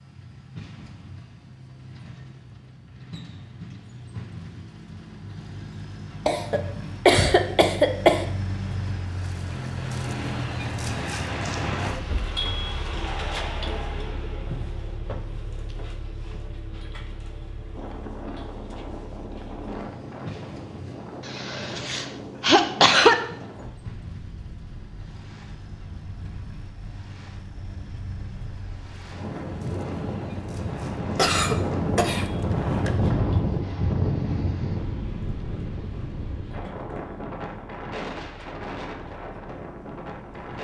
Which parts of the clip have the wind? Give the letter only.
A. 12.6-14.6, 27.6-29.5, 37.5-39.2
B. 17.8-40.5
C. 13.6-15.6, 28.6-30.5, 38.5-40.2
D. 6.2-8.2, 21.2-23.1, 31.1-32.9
B.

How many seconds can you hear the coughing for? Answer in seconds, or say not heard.
6 s.